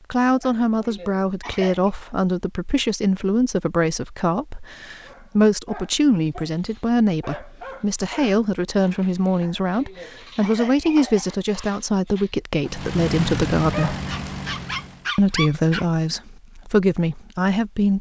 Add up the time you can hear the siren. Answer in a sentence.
You can't hear the siren here.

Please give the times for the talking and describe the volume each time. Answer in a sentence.
The talking can be heard from 0.1 to 13.9 s, at a steady volume; and briefly from 15.2 to 17.9 s.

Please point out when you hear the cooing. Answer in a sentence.
You can't hear the cooing here.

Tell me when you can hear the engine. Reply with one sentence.
You can hear the engine from 12.7 to 15.1 s.